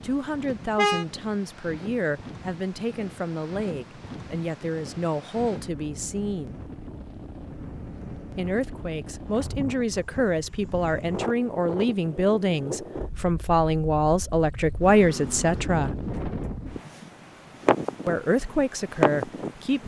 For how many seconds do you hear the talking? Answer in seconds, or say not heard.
16 s.